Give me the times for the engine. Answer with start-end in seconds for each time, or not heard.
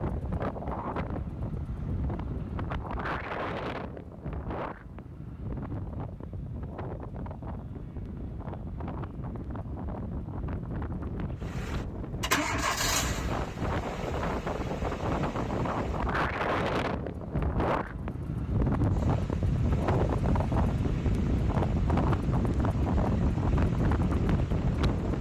11.4-16.1, 18.9-25.1.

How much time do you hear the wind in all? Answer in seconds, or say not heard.
25 s.